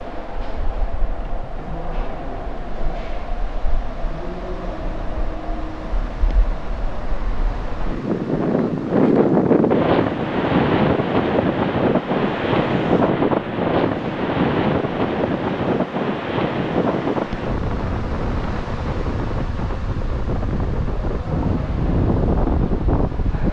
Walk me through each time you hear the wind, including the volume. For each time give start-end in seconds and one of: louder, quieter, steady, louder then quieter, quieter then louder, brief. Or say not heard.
0.0-23.4 louder then quieter.